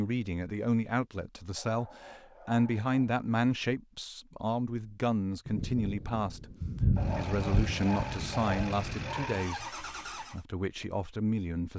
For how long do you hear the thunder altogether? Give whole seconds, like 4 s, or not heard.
4 s.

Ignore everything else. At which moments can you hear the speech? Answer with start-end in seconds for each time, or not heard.
0.0-6.5, 7.2-9.7, 10.3-11.7.